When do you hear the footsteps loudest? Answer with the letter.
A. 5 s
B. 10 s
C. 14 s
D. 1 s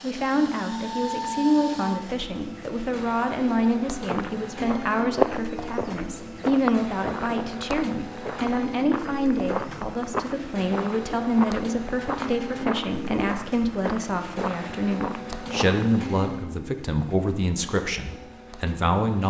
A.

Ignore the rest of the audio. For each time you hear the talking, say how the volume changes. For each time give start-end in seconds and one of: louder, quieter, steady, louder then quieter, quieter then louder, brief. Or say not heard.
0.0-19.2 steady.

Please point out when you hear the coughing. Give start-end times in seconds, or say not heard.
not heard.